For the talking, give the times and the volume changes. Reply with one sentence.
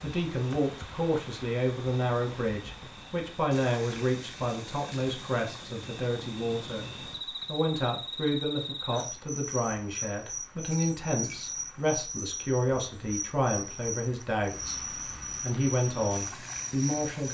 The talking can be heard from 0.0 to 14.8 s, at a steady volume; and briefly from 15.4 to 17.2 s.